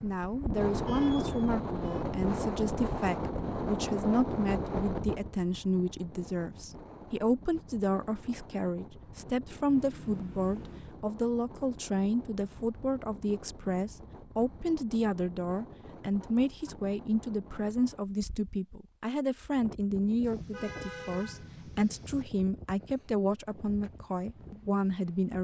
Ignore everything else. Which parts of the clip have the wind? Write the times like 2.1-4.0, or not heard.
0.0-25.3.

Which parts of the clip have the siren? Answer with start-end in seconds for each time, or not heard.
not heard.